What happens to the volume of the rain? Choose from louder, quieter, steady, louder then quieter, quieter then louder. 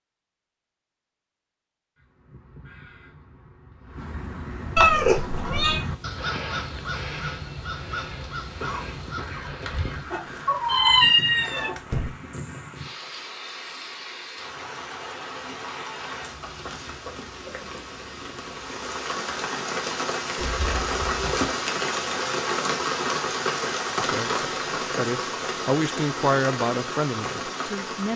louder.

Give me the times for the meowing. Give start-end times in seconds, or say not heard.
4.8-5.8, 10.1-11.8, 20.4-21.4.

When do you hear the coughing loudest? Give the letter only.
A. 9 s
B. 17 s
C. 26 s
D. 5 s
A.